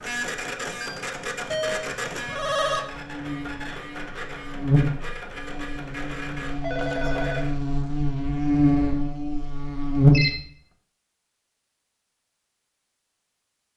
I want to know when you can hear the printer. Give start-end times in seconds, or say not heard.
0.0-7.6.